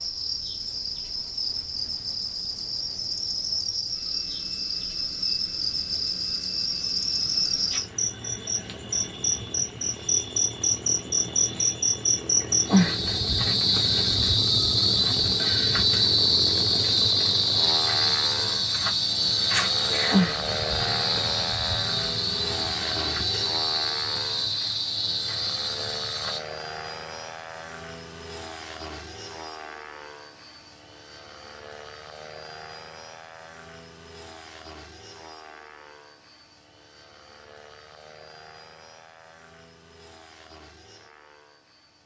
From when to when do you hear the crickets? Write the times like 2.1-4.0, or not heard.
0.0-26.4.